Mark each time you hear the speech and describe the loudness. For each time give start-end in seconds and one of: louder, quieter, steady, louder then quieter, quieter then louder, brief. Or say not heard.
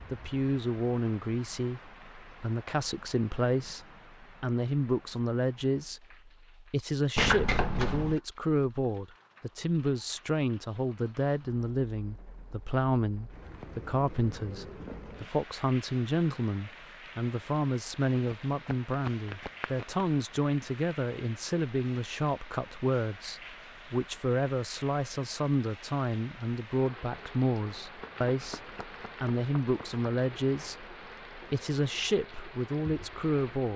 0.1-33.7 steady.